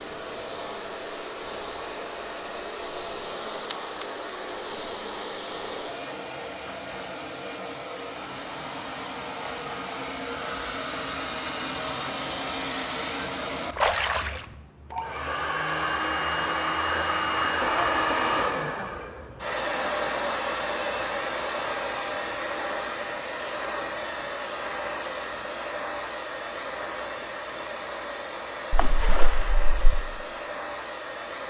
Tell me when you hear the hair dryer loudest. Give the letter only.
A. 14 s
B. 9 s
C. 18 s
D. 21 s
C.